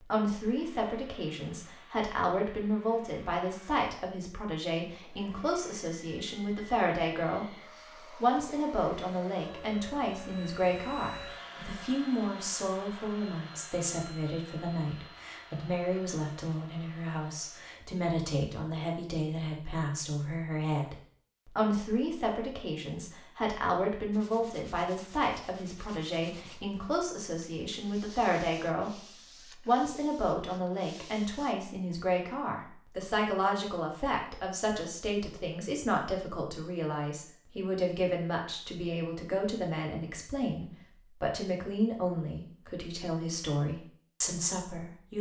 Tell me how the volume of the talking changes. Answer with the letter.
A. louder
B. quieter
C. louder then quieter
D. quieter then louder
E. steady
E.